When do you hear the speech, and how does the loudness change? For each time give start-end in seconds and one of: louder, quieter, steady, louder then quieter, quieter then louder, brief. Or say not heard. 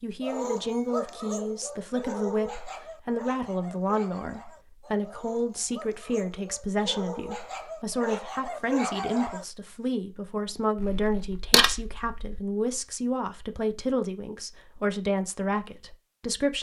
0.0-16.5 steady.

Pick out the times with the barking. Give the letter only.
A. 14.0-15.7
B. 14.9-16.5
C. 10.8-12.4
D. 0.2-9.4
D.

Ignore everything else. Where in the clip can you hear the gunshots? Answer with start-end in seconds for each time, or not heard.
10.8-12.4.